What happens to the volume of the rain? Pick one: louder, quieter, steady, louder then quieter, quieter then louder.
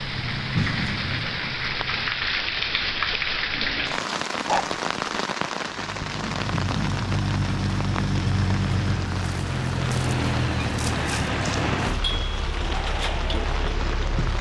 quieter.